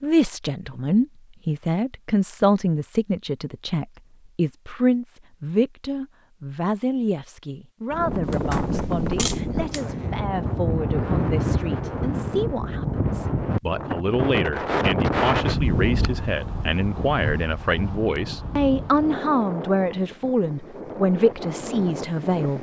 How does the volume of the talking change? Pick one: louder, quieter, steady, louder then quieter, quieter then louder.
quieter then louder.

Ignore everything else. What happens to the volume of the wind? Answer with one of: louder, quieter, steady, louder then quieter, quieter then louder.
quieter.